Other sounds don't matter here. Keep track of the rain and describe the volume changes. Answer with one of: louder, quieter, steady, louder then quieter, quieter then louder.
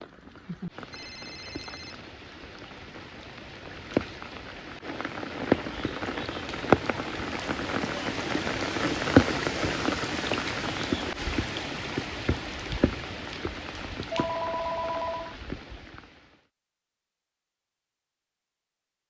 louder then quieter.